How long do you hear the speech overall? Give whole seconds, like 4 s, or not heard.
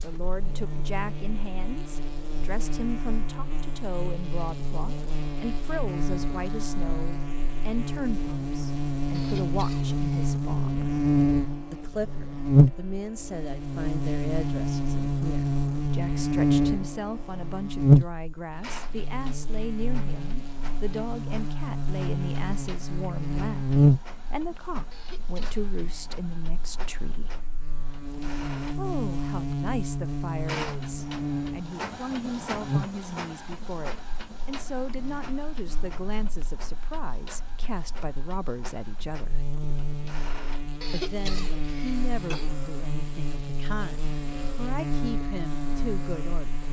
43 s.